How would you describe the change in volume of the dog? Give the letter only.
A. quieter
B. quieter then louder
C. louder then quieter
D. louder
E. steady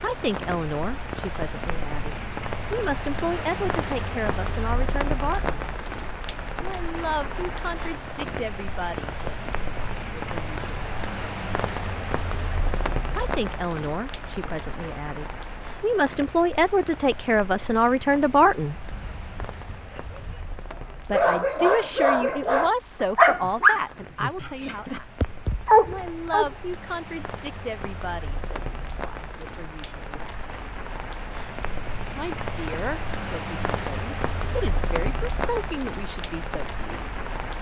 D.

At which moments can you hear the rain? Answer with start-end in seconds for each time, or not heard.
0.0-37.5.